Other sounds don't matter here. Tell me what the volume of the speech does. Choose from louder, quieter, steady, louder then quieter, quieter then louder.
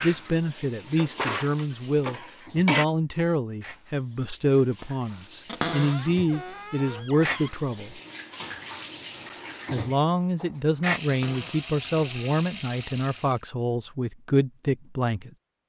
steady.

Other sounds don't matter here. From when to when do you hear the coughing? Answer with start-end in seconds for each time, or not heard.
1.5-2.9.